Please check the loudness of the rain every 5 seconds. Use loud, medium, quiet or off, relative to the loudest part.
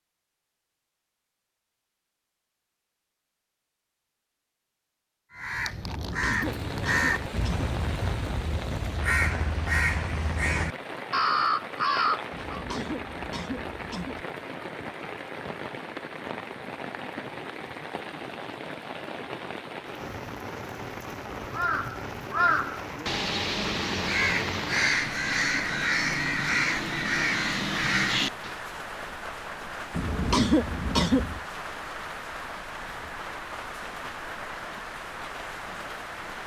off, loud, loud, loud, loud, loud, loud, loud.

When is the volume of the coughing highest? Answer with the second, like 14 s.
30 s.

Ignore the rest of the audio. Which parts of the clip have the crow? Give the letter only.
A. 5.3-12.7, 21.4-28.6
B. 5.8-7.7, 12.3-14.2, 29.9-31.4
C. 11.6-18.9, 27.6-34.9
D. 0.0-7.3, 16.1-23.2
A.